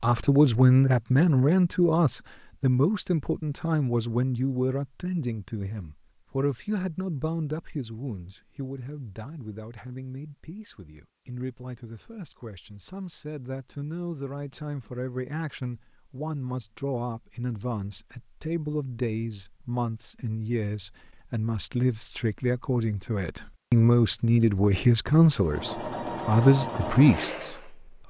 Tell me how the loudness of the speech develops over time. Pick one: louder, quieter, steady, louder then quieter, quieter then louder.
quieter then louder.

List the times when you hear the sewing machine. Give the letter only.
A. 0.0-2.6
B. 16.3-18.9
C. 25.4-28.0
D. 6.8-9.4
C.